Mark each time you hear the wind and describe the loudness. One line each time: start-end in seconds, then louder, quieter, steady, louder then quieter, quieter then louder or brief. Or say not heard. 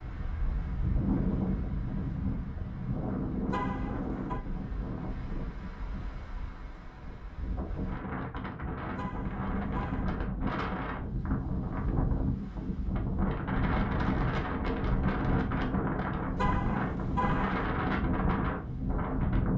0.0-19.5 quieter then louder.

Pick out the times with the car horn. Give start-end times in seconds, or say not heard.
3.5-4.5, 8.9-10.1, 16.4-17.6.